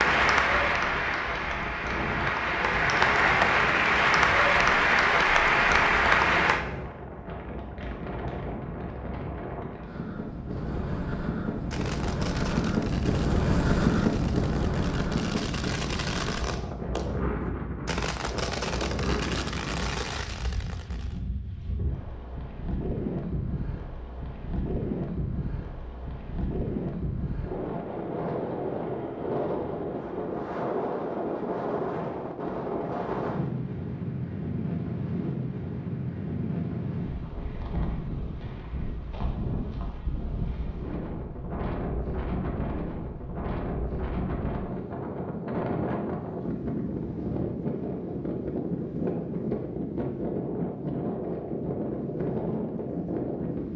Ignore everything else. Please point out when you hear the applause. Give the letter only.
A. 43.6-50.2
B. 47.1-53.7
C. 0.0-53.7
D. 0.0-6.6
D.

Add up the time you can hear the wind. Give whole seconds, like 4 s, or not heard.
54 s.